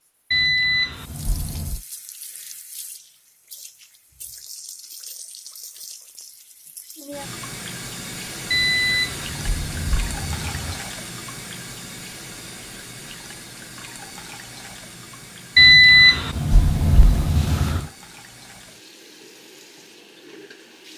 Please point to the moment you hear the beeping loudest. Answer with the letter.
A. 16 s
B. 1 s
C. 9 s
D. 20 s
A.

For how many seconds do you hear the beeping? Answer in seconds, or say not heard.
6 s.